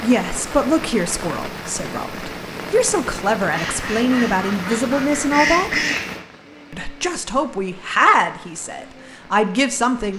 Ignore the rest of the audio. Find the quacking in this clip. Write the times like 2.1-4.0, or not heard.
3.5-6.2.